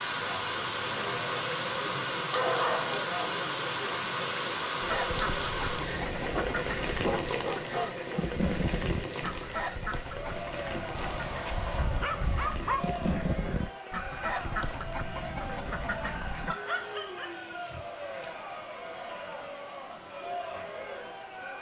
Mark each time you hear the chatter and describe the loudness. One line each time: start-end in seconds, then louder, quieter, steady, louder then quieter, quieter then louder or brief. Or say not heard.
0.0-21.5 steady.